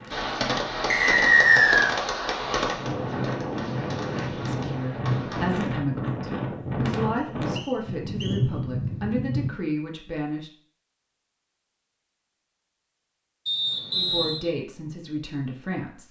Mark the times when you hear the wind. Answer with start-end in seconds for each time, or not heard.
0.0-9.5.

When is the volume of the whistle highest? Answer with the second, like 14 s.
1 s.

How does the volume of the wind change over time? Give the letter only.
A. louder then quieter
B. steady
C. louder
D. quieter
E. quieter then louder
C.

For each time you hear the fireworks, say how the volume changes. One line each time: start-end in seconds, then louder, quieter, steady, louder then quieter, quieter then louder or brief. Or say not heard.
0.1-5.7 quieter.